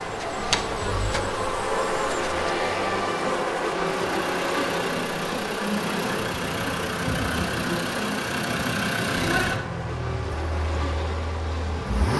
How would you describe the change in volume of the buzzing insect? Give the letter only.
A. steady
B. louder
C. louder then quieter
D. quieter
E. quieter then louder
D.